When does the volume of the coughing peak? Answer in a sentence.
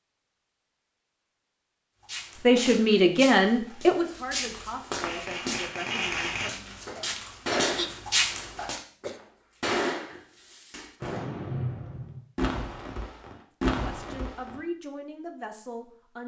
The volume of the coughing peaks at 8 seconds.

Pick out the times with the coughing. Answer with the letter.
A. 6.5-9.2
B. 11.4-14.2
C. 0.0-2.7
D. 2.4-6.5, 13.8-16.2
A.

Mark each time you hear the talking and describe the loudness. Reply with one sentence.
The talking can be heard from 2.4 to 6.5 s, getting quieter; and briefly from 13.8 to 16.2 s.